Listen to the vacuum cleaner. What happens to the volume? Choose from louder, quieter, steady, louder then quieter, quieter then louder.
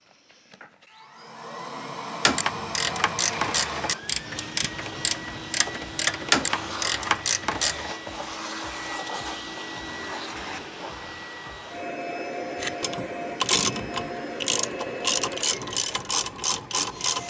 steady.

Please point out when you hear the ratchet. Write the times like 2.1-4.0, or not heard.
2.2-8.0, 12.6-17.2.